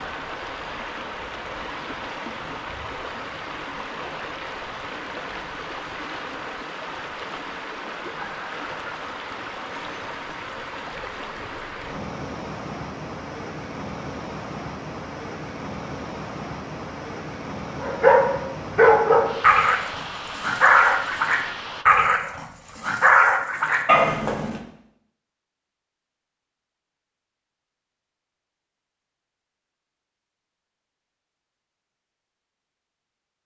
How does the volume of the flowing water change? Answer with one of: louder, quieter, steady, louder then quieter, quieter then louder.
steady.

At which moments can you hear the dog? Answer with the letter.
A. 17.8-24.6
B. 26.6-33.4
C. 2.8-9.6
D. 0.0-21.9
A.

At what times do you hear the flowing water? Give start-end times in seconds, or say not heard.
0.0-21.9.